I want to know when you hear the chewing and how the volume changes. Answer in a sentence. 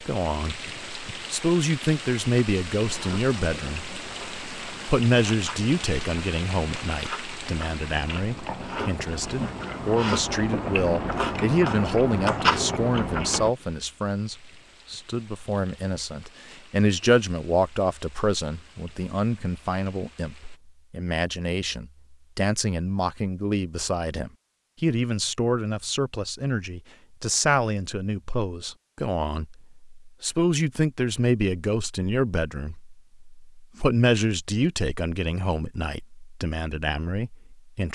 The chewing can be heard from 2.8 to 13.5 s, getting louder.